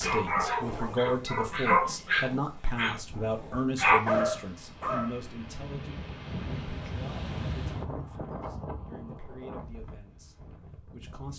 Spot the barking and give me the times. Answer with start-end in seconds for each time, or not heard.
0.0-5.2.